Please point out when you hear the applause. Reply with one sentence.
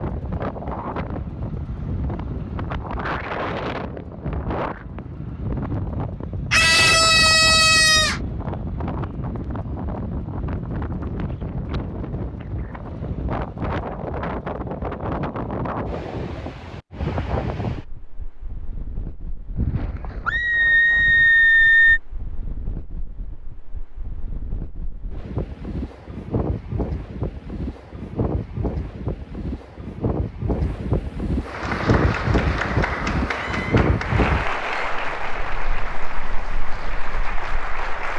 You can hear the applause from 31.4 to 38.1 s.